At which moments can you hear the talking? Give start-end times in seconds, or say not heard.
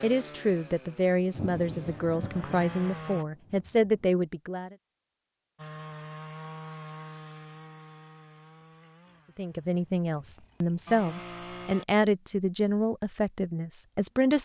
0.0-4.8, 9.3-14.4.